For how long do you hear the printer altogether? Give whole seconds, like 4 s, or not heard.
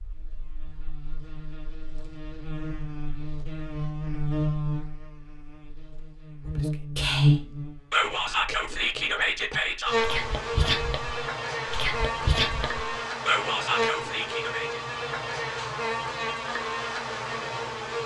not heard.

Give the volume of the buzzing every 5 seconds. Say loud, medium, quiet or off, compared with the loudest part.
medium, loud, loud, loud.